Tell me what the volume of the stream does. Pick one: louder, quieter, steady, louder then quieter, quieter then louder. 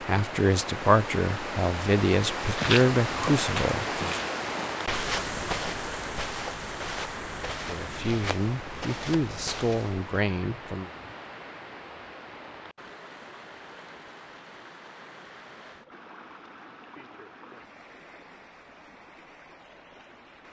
quieter.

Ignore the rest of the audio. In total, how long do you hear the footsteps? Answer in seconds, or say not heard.
8 s.